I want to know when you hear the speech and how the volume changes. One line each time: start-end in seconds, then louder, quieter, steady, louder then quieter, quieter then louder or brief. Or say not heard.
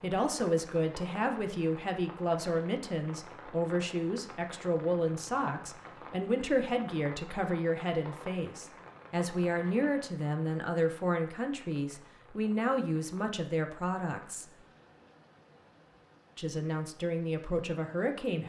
0.0-14.4 steady
16.4-18.4 brief.